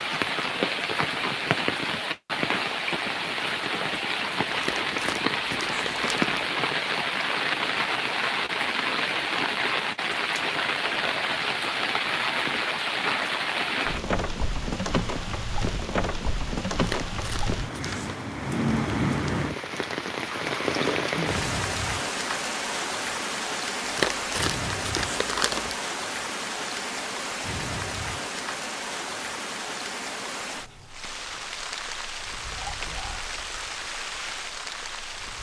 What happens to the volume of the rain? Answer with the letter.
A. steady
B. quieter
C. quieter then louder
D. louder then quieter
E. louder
B.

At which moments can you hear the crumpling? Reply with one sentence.
The crumpling can be heard from 4.5 to 6.4 s, from 16.8 to 18.1 s and from 23.9 to 25.8 s.